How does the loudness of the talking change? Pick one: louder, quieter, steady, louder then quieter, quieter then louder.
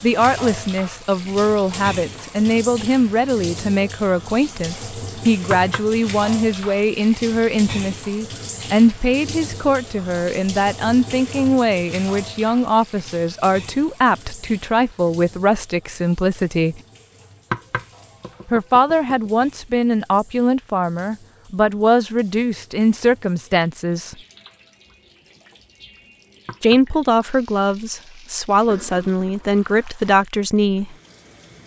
steady.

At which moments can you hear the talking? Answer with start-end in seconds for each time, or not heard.
0.0-16.8, 18.4-24.1, 26.6-30.9.